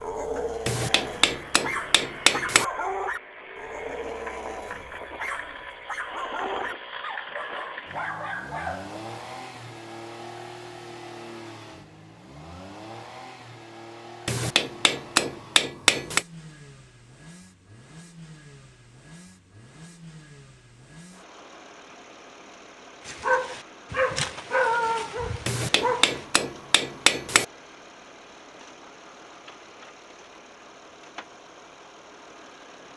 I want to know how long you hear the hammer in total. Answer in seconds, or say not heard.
6 s.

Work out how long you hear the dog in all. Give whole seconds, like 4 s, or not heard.
12 s.